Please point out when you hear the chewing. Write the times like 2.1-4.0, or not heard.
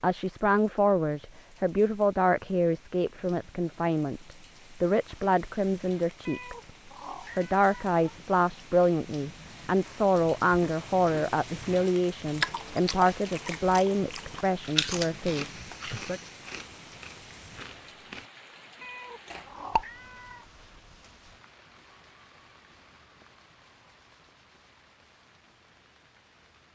10.2-18.2, 19.2-19.9.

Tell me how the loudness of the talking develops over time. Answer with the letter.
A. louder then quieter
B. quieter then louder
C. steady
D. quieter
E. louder
C.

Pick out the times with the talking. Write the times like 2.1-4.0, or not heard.
0.0-6.7, 7.3-16.2.